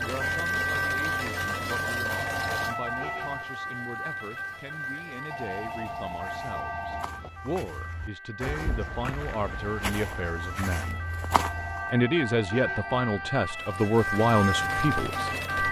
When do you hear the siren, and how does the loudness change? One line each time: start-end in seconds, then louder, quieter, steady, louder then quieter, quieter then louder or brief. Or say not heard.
0.0-15.6 quieter then louder.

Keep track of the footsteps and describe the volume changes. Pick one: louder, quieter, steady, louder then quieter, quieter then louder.
louder.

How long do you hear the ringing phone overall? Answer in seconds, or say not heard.
5 s.